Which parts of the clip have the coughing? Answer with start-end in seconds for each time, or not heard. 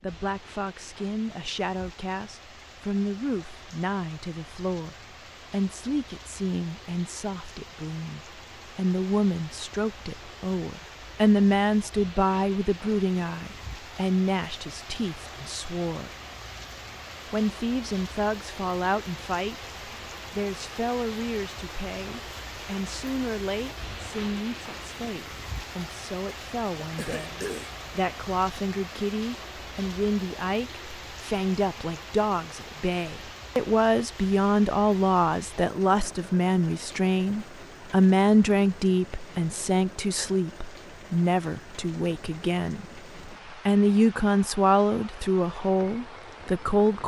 26.8-27.8.